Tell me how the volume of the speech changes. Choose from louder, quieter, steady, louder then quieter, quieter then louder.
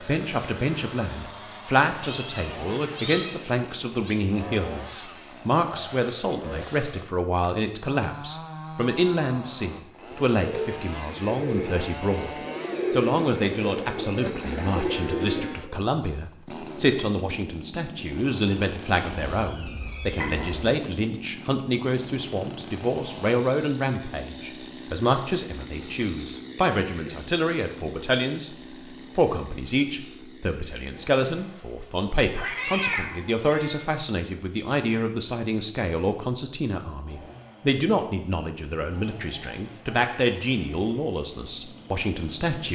steady.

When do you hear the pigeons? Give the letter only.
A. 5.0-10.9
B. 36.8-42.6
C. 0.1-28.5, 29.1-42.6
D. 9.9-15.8
D.